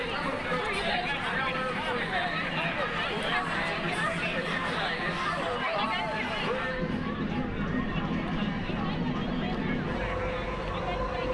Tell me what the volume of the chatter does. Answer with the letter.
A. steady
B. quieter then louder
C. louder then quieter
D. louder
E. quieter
E.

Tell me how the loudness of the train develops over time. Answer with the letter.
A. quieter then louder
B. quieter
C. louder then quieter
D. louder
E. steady
D.